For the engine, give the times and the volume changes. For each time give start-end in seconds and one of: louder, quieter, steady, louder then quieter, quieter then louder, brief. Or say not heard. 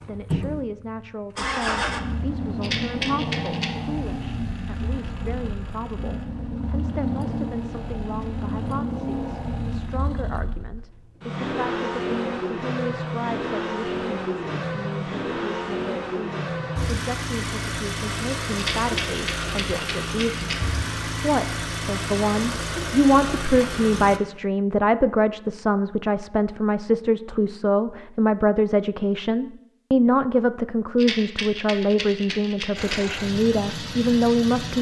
0.0-24.2 steady
32.8-34.7 brief.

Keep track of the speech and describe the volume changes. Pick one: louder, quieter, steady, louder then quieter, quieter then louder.
louder.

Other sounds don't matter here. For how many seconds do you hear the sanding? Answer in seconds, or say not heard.
not heard.